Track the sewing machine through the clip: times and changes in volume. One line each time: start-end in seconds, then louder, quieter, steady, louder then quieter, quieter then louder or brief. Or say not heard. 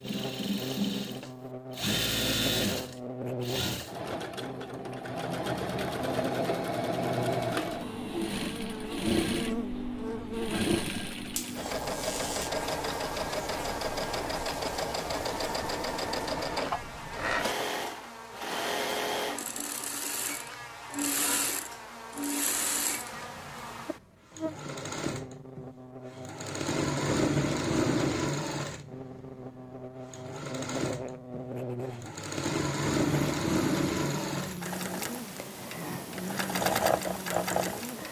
0.0-38.0 steady.